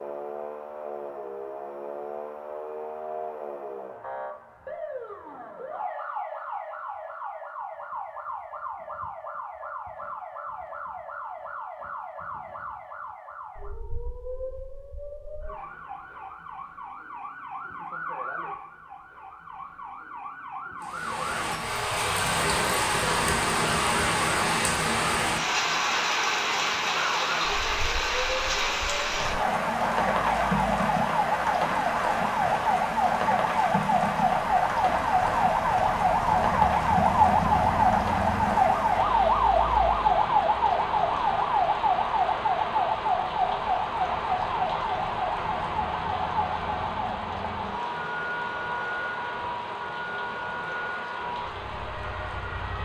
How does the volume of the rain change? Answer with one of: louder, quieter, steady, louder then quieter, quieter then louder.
quieter.